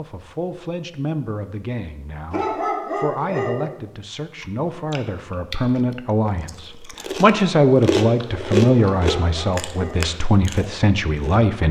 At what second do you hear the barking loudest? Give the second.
3 s.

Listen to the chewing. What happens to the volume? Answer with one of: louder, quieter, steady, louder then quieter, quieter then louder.
louder then quieter.